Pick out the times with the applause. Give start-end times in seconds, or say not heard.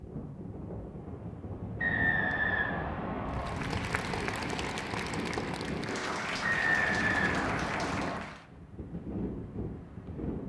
3.2-8.4.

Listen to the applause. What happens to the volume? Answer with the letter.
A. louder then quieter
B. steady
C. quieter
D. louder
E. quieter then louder
B.